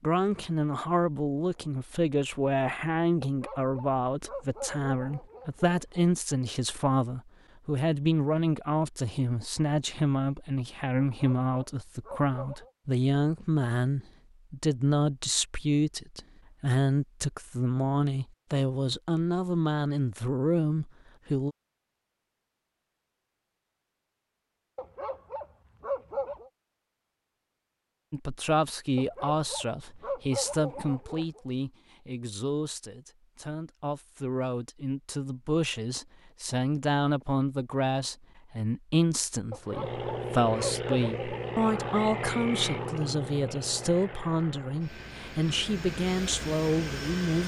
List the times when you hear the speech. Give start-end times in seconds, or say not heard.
0.0-21.6, 28.1-47.4.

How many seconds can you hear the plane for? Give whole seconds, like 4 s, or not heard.
8 s.